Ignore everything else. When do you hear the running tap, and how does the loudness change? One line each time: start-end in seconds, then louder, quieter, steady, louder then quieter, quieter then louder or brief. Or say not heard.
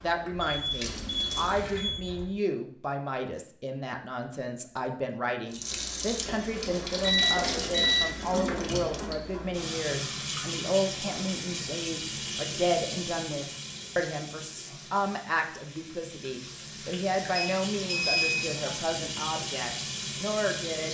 0.0-1.8 brief
5.5-20.9 quieter then louder.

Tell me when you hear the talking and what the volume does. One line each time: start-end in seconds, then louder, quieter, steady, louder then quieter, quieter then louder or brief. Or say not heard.
0.0-20.9 steady.